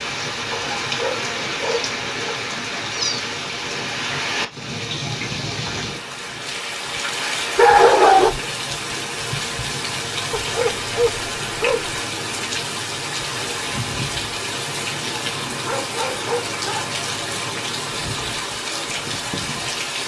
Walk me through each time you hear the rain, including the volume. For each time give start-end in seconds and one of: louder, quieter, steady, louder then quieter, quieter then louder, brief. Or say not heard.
0.0-20.0 steady.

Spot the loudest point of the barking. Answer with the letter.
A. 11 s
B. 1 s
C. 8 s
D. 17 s
C.